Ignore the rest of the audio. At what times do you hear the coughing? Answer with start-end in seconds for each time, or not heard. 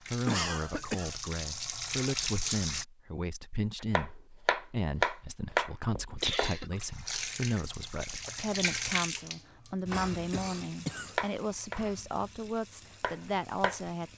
0.2-1.1, 5.9-6.7, 9.9-11.2.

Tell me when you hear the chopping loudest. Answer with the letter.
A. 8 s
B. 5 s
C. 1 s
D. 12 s
B.